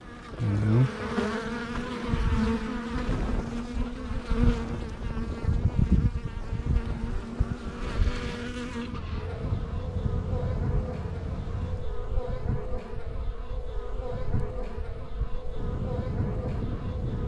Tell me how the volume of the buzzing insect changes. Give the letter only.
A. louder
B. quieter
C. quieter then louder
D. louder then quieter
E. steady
B.